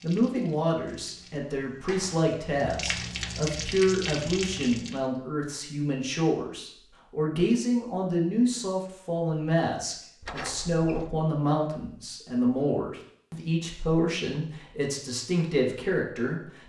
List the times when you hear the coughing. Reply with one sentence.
The coughing can't be heard in this clip.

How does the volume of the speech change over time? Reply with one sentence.
The loudness of the speech stays about the same.